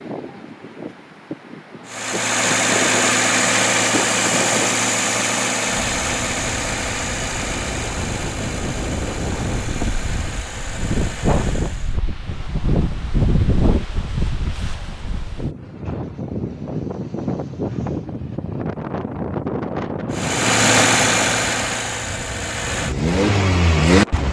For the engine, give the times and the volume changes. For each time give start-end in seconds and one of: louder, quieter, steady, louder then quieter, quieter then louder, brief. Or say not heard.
1.9-12.0 quieter
20.1-24.2 quieter then louder.